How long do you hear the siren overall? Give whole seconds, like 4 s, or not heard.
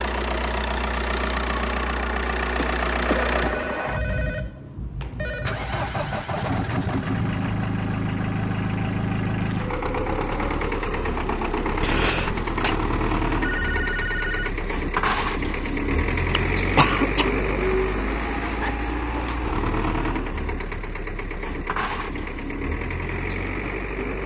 not heard.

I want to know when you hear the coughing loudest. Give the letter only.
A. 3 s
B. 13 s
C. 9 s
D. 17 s
D.